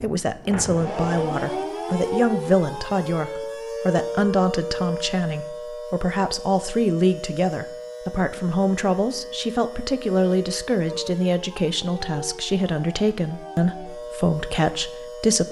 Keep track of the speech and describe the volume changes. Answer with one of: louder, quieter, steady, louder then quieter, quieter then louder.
steady.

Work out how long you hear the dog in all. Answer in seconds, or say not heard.
not heard.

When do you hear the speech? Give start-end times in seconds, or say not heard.
0.0-15.4.